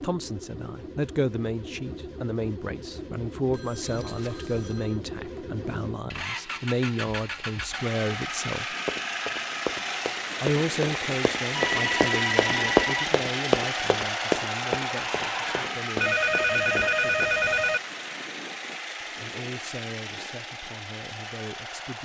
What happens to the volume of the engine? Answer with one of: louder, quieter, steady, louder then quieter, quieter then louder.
louder then quieter.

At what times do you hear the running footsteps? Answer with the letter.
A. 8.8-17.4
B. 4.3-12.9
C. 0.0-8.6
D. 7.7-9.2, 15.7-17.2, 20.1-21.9
A.